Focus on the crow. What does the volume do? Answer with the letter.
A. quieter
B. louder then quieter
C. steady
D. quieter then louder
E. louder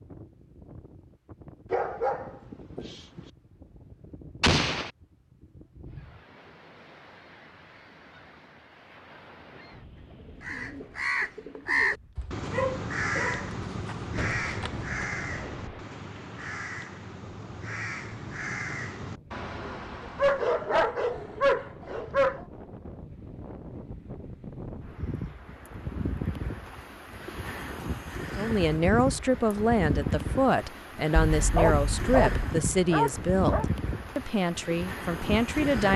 A.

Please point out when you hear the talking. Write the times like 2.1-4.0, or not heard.
28.4-35.9.